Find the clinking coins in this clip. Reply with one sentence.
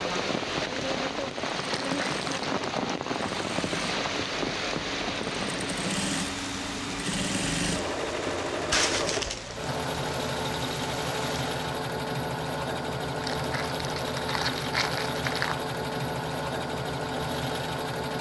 You can't hear the clinking coins here.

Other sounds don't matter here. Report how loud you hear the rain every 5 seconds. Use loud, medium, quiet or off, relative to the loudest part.
loud, medium, medium, off.